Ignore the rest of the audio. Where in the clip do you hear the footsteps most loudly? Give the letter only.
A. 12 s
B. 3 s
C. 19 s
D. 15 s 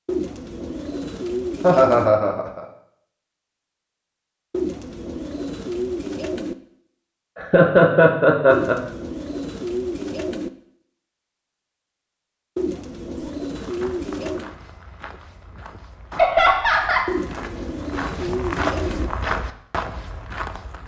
C.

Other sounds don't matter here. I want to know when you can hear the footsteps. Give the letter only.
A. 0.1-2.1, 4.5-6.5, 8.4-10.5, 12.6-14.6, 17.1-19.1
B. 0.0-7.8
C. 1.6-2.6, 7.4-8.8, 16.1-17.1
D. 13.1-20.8
D.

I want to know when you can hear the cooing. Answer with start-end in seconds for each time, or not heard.
0.1-2.1, 4.5-6.5, 8.4-10.5, 12.6-14.6, 17.1-19.1.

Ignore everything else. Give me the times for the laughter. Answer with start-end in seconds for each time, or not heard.
1.6-2.6, 7.4-8.8, 16.1-17.1.